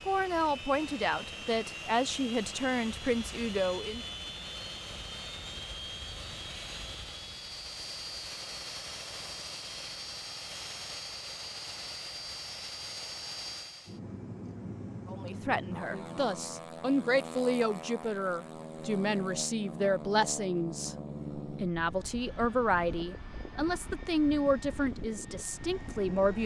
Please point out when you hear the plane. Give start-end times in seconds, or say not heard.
0.0-26.4.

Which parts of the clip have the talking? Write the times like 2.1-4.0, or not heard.
0.1-4.0, 15.1-26.4.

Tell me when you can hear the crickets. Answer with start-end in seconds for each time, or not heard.
not heard.